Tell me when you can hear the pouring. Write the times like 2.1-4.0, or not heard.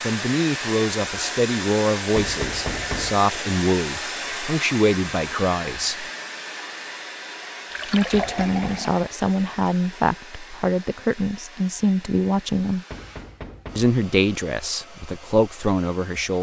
7.7-9.1.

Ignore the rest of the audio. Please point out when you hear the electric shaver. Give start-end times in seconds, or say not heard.
not heard.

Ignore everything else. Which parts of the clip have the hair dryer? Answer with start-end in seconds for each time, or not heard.
0.0-16.3.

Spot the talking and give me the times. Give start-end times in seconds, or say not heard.
0.0-6.0, 7.8-12.8, 13.8-16.3.